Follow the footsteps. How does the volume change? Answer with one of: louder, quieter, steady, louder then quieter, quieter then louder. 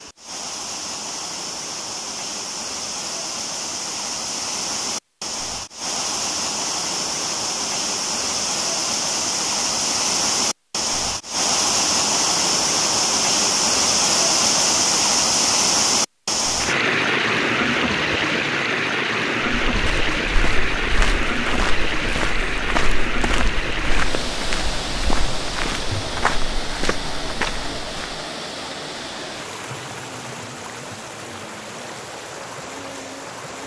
steady.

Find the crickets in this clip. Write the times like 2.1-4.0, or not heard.
not heard.